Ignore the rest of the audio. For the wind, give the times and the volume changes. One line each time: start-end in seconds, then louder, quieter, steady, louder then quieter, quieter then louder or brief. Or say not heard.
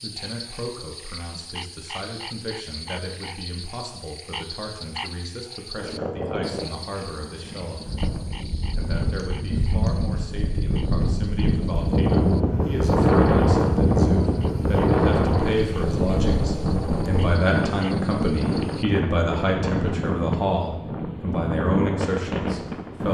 5.8-23.0 louder then quieter.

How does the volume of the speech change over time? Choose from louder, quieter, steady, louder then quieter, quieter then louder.
louder.